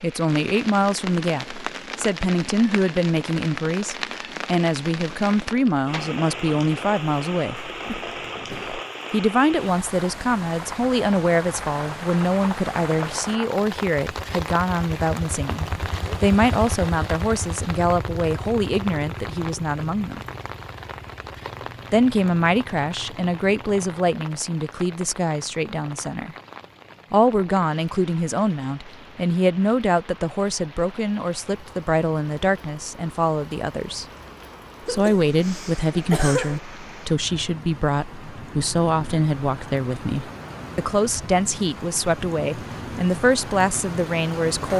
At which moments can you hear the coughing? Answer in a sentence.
You can hear the coughing from 7.5 to 8.8 s and from 34.9 to 36.6 s.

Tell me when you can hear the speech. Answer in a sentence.
You can hear the speech from 0.0 to 7.8 s, from 9.1 to 20.2 s, from 21.9 to 26.4 s, from 27.1 to 34.0 s and from 34.9 to 44.7 s.